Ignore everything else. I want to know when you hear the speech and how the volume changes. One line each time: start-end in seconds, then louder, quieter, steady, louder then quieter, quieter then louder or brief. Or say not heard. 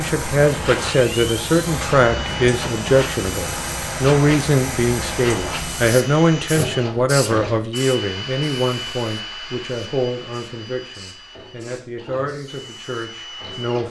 0.0-13.8 quieter.